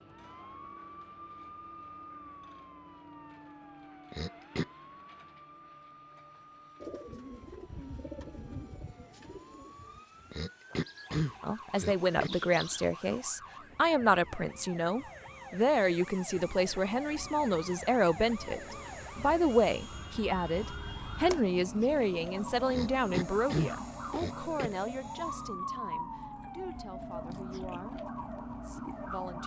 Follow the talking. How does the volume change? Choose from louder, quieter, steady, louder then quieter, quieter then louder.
quieter.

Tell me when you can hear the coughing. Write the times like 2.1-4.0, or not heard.
4.1-4.7, 10.3-12.3, 22.7-24.7.